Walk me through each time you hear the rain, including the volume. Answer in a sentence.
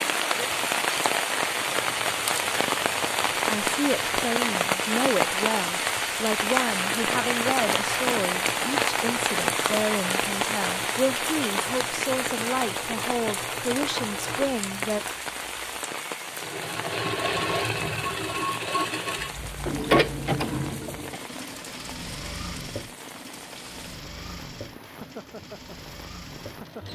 The rain can be heard from 0.0 to 26.9 s, getting quieter.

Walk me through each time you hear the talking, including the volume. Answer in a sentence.
You can hear the talking from 3.5 to 15.0 s, at a steady volume.